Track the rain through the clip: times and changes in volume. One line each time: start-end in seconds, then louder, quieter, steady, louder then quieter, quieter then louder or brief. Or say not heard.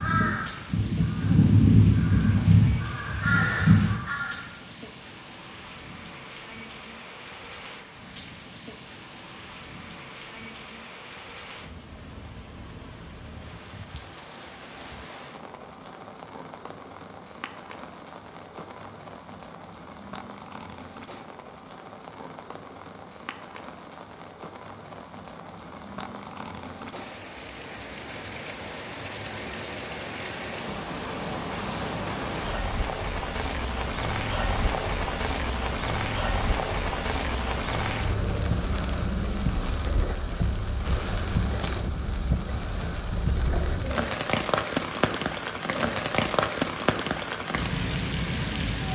0.0-48.9 louder.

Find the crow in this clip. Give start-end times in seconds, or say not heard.
0.0-4.4.